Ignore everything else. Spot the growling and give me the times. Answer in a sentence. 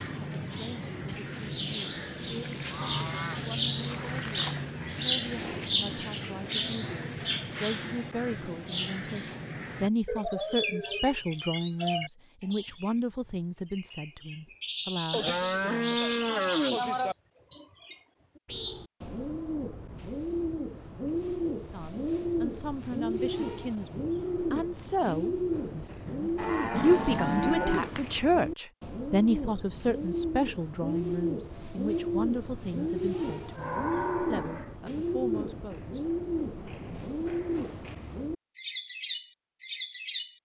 You can hear the growling from 26.1 to 28.1 s.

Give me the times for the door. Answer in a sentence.
The door can't be heard in this clip.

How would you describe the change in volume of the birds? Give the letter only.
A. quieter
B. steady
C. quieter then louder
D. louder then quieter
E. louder
B.